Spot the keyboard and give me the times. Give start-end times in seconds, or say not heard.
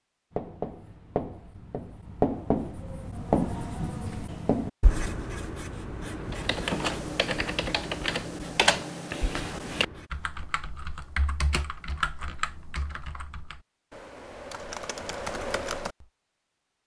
6.3-16.1.